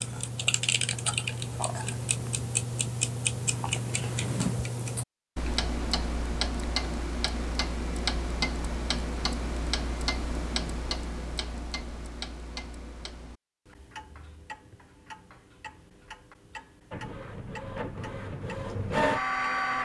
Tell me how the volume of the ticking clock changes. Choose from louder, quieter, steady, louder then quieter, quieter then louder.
quieter.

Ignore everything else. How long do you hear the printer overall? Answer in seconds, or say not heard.
3 s.